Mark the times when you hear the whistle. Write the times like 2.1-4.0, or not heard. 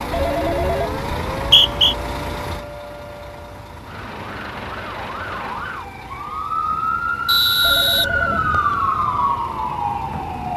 1.4-1.9, 7.2-8.8.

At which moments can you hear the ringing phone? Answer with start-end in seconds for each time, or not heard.
0.1-1.2, 7.6-8.6.